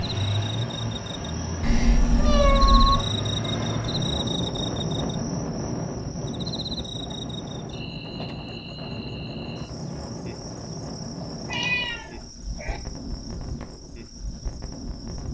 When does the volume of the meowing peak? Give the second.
3 s.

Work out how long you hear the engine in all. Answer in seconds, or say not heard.
4 s.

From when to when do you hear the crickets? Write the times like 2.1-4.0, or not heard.
0.0-15.3.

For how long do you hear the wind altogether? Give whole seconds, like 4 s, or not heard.
15 s.